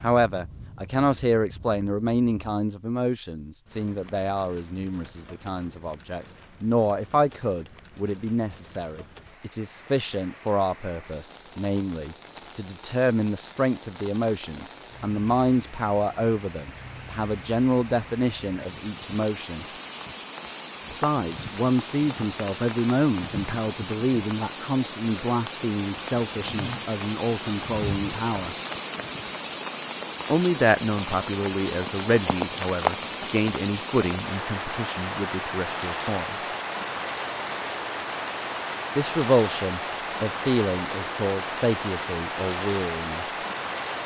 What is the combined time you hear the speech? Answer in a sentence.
The speech can be heard for 38 seconds in total.